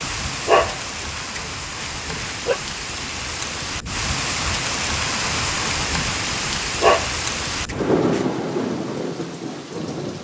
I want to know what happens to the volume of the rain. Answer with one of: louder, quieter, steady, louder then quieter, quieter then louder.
louder.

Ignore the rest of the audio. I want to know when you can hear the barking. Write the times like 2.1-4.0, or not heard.
0.5-2.6, 6.8-8.2.